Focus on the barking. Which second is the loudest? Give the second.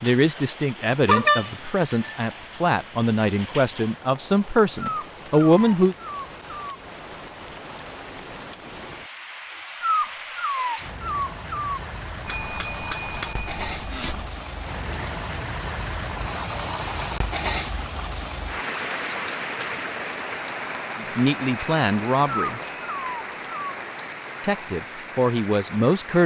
10 s.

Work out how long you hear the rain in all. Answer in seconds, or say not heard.
26 s.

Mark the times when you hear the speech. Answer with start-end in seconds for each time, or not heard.
0.0-6.0, 20.9-22.6, 24.4-26.2.